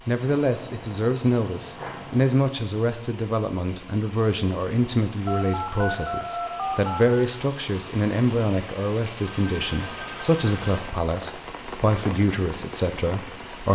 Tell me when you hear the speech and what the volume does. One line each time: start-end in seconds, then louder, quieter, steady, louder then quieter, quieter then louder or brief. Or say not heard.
0.1-13.6 steady.